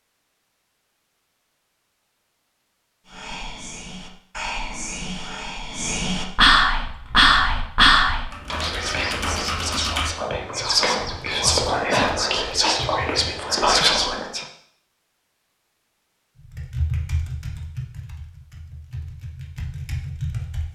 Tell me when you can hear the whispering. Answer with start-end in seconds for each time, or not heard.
3.0-14.4.